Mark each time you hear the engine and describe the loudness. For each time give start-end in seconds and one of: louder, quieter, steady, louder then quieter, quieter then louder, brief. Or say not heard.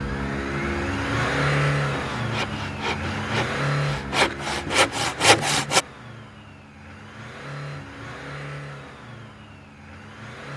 0.0-10.5 quieter.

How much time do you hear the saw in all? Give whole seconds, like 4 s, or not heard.
4 s.